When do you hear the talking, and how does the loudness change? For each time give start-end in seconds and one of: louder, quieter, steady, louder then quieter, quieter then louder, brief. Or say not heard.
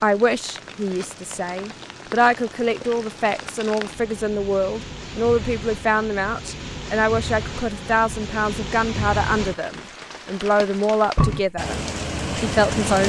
0.0-11.8 steady
12.4-13.0 brief.